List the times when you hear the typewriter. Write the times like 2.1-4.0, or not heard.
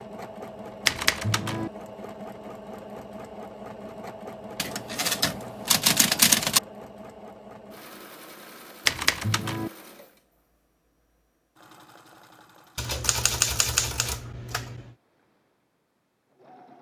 0.8-1.7, 4.5-6.6, 8.8-9.7, 12.8-14.9.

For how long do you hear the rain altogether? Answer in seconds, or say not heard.
not heard.